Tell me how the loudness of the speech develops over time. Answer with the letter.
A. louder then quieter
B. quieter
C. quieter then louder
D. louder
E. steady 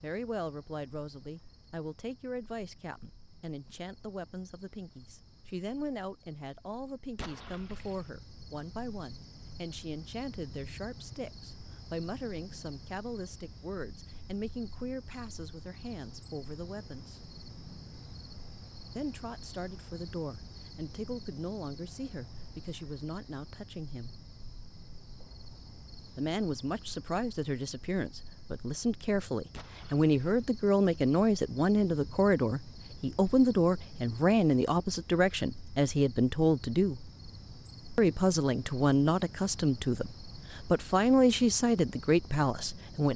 D.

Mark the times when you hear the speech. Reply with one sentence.
The speech can be heard from 0.0 to 17.2 s, from 18.9 to 24.1 s, from 26.1 to 37.0 s and from 38.0 to 43.1 s.